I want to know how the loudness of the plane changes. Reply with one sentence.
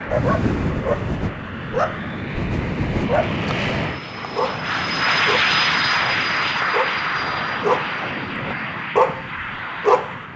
The loudness of the plane goes up, then down.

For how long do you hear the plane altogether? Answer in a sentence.
You can hear the plane for 10 seconds altogether.